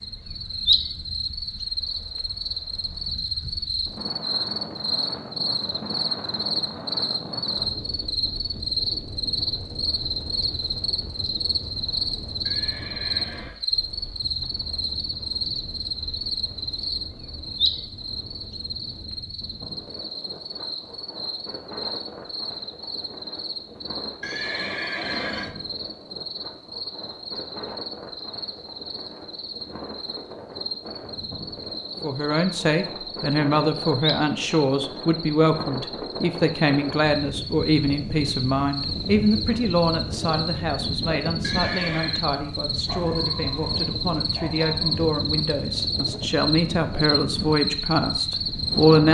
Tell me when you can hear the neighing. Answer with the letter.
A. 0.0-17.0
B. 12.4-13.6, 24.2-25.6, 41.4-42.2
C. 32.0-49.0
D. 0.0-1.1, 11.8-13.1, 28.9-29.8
B.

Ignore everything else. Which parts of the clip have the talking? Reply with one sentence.
The talking can be heard from 32.0 to 49.0 s.